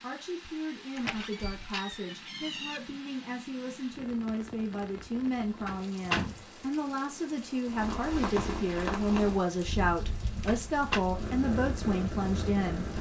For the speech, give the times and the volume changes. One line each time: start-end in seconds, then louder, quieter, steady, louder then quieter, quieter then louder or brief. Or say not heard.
0.0-12.9 louder.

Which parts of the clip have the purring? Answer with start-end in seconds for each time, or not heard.
7.7-12.9.